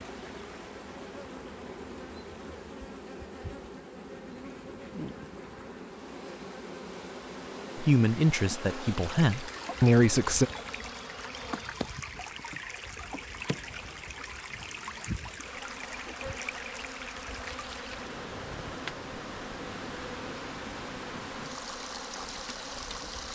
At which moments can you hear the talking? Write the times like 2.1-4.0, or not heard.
7.8-10.5.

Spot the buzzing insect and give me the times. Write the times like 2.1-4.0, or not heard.
0.0-23.2.